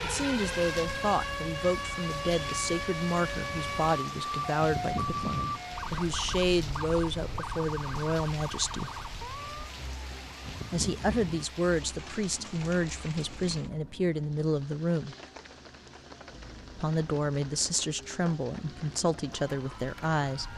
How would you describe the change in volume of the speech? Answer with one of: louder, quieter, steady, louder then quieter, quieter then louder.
steady.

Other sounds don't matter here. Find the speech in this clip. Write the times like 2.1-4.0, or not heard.
0.0-8.9, 10.7-15.2, 16.8-20.5.